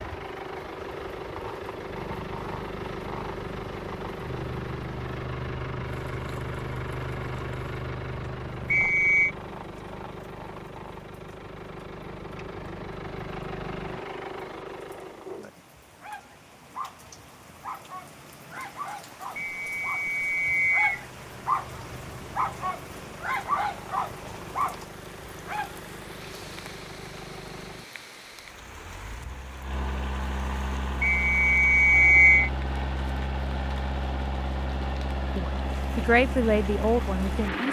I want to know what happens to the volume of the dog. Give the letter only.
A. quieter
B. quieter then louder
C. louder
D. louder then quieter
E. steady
C.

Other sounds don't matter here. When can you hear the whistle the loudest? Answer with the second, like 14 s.
32 s.